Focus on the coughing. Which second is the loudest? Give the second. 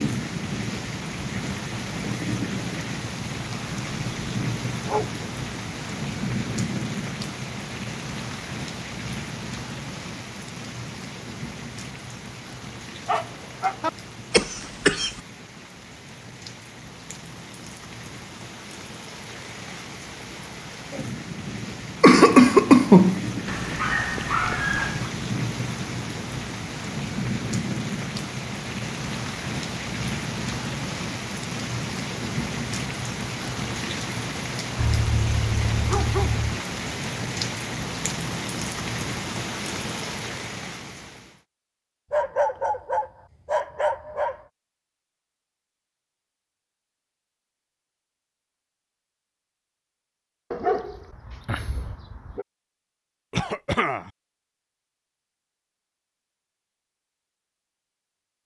23 s.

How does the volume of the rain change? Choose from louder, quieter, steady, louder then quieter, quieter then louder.
quieter then louder.